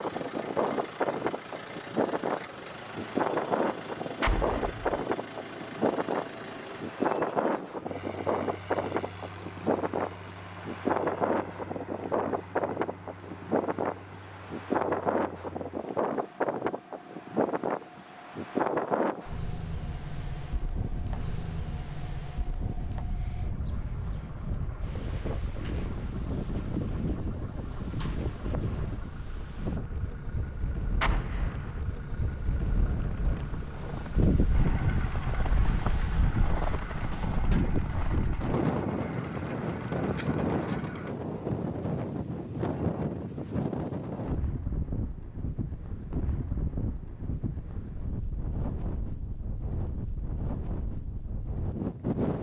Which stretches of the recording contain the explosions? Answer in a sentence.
The explosions can be heard from 4.2 to 4.9 s and from 31.0 to 31.8 s.